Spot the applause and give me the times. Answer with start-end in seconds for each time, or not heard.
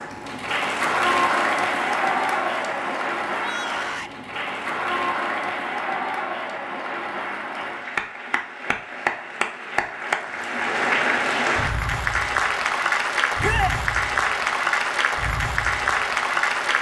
0.0-16.7.